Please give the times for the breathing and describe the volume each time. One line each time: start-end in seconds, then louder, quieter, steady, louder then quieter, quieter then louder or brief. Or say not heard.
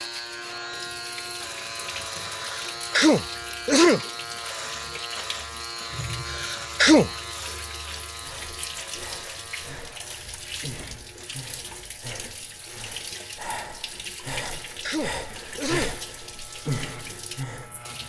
8.2-17.9 louder.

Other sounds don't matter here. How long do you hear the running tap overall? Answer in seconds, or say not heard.
18 s.